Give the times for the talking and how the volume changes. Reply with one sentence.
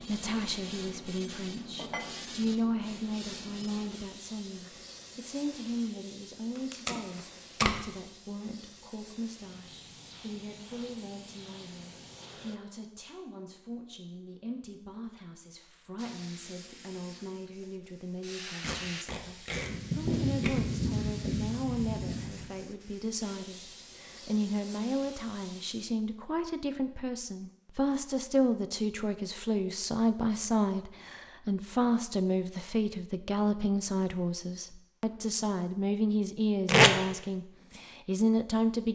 The talking can be heard from 0.0 to 38.8 s, getting quieter then louder.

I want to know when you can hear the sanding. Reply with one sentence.
The sanding can be heard from 19.5 to 22.5 s.